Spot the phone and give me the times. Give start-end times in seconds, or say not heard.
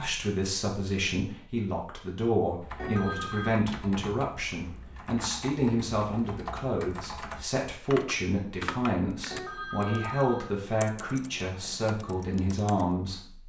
2.8-3.6, 9.3-10.5.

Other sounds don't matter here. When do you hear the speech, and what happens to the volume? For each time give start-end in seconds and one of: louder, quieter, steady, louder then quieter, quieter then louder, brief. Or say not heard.
0.0-13.4 steady.